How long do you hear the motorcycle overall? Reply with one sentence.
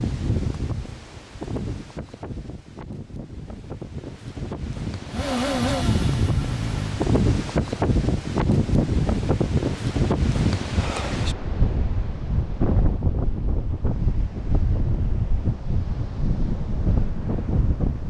You can hear the motorcycle for 2 seconds altogether.